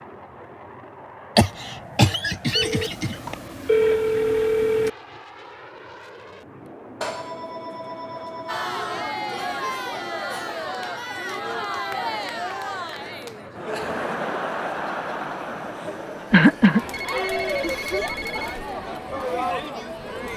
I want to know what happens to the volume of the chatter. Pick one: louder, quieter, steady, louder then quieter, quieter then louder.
steady.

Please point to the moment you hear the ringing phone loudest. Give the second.
4 s.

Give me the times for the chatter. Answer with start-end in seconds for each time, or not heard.
8.4-20.3.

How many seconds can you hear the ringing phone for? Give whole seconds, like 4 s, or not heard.
6 s.